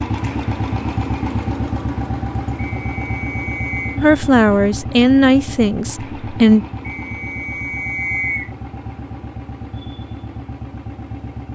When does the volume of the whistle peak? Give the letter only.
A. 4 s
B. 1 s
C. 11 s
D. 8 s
D.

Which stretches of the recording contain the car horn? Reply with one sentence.
You can't hear the car horn here.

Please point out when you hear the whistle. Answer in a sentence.
The whistle can be heard from 2.5 to 4.0 s and from 6.8 to 8.5 s.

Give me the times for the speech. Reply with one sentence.
The speech can be heard from 4.0 to 6.7 s.